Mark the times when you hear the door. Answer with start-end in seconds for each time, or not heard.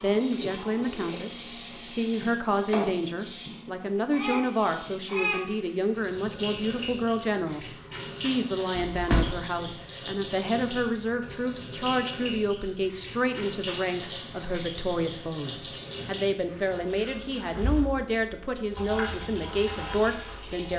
8.8-9.4.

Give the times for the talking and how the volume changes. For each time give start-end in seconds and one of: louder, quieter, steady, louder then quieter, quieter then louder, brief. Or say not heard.
0.0-20.7 steady.